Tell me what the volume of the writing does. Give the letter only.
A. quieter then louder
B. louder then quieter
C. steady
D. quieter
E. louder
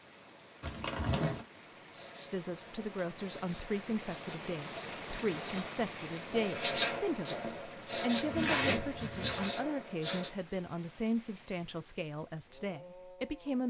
E.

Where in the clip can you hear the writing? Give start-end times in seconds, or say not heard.
1.9-10.3.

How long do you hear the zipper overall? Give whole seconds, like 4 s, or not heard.
2 s.